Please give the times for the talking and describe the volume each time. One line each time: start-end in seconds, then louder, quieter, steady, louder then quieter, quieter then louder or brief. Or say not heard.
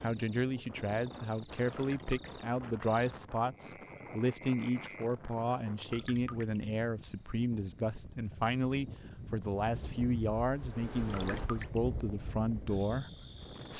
0.0-13.1 steady.